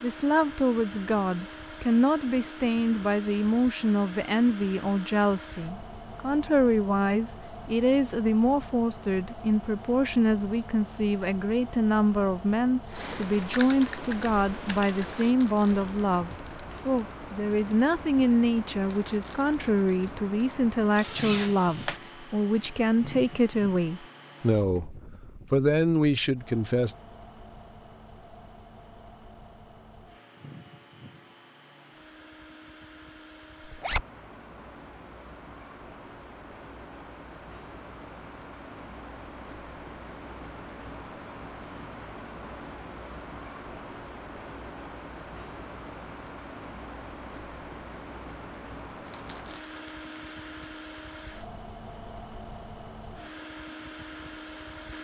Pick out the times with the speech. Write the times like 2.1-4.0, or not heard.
0.0-26.9.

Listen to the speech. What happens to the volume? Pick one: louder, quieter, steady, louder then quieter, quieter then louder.
steady.